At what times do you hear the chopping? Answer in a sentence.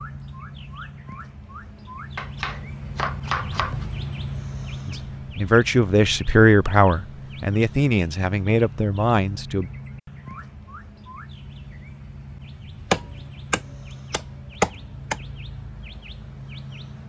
The chopping can be heard from 2.1 to 3.9 s and from 12.9 to 15.2 s.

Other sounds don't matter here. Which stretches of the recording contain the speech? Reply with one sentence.
You can hear the speech from 4.8 to 9.7 s.